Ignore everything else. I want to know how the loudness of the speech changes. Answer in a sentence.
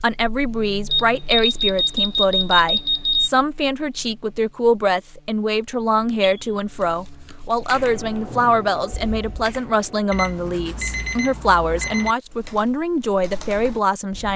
The volume of the speech stays about the same.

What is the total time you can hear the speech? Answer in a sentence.
You can hear the speech for 14 seconds altogether.